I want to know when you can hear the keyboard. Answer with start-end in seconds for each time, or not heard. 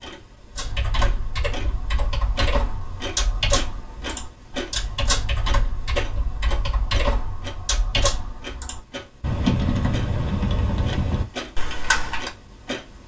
0.6-12.3.